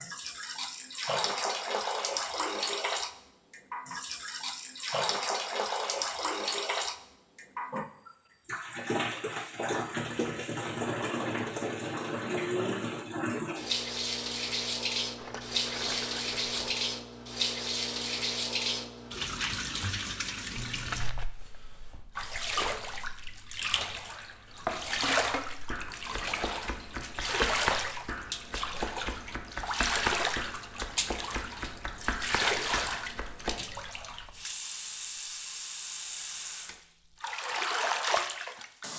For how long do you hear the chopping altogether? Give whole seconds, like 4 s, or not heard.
9 s.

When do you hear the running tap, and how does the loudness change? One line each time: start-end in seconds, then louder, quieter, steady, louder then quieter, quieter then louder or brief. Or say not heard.
0.0-38.9 steady.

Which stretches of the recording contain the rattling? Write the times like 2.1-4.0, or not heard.
15.2-16.9, 20.6-21.2.